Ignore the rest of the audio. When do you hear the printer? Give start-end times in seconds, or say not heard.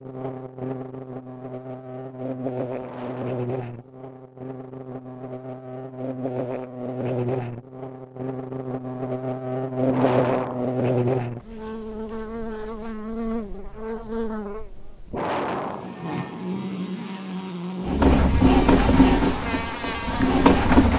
17.9-20.9.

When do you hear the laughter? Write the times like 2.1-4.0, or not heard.
not heard.